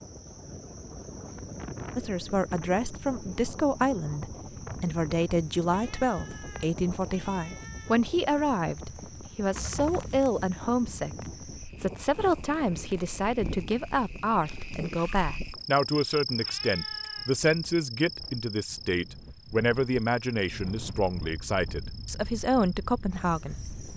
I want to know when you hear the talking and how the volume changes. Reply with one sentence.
You can hear the talking from 1.9 to 23.7 s, at a steady volume.